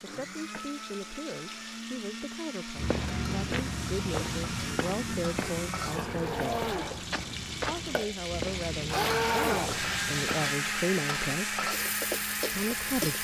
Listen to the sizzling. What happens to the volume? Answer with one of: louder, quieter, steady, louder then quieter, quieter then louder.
louder.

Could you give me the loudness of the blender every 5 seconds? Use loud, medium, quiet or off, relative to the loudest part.
medium, loud, loud.